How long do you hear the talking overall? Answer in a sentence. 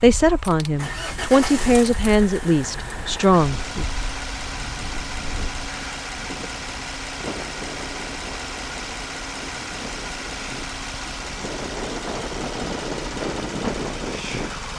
You can hear the talking for 4 seconds altogether.